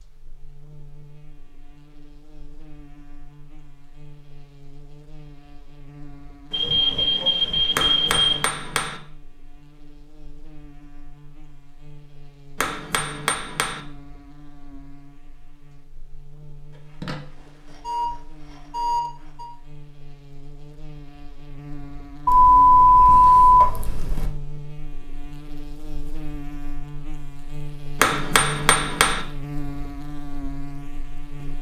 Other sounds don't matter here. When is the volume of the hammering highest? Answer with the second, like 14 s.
28 s.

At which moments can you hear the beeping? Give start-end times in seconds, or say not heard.
6.5-8.4, 17.0-19.5, 22.2-24.3.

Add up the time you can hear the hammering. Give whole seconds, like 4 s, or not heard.
4 s.